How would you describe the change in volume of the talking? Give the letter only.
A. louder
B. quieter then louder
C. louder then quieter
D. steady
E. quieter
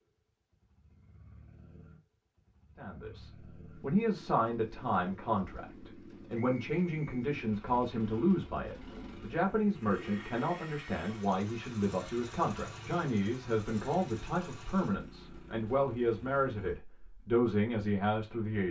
D.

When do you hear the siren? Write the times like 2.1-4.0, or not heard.
not heard.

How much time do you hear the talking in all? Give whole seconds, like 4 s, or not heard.
16 s.